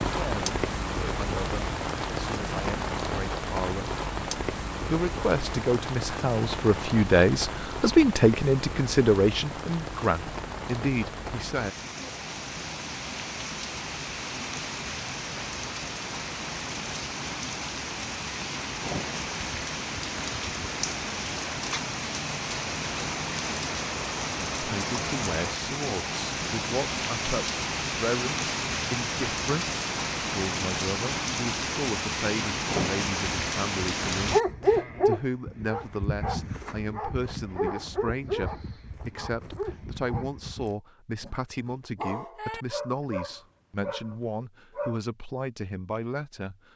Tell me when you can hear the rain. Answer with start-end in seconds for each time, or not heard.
0.0-34.4.